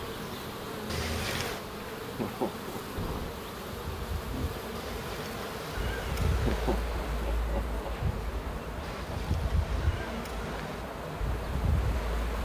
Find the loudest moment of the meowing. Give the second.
1 s.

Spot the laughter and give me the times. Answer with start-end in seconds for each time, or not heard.
2.1-2.8, 6.4-7.9.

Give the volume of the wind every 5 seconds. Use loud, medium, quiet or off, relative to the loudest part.
medium, loud, loud.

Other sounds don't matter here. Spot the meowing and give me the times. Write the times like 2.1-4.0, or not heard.
0.8-1.6, 4.8-6.8, 8.8-10.8.